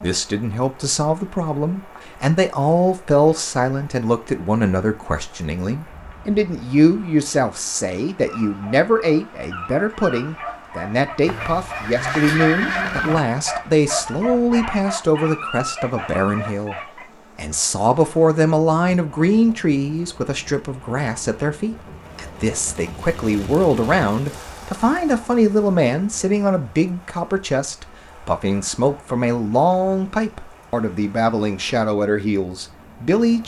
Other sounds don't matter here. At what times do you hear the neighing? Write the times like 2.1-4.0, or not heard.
11.2-13.2.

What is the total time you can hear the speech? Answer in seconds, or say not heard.
33 s.